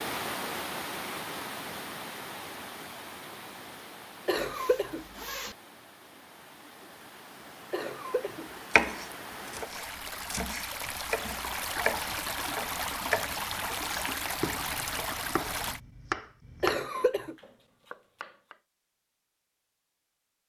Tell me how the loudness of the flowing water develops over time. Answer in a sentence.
The volume of the flowing water goes down, then up.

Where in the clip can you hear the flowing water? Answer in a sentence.
The flowing water can be heard from 0.0 to 15.8 s.